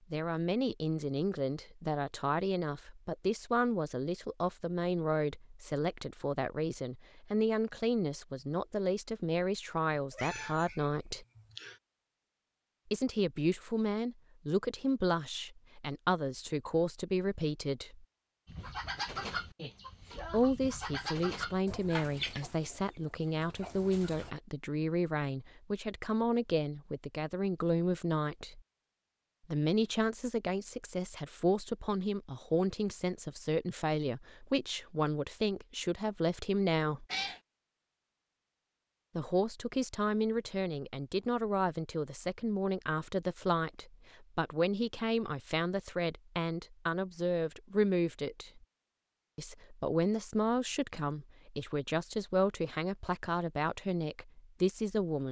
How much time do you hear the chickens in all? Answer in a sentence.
The chickens can be heard for 6 seconds in total.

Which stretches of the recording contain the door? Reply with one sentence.
You can't hear the door here.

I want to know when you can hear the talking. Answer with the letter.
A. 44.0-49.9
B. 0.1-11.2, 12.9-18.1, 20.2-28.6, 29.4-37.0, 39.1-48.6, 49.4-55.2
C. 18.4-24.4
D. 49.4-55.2
B.